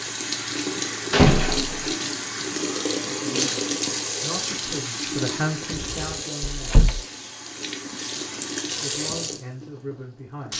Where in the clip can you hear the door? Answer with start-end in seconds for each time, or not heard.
1.1-1.9, 5.7-7.0.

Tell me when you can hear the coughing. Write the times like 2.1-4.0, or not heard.
not heard.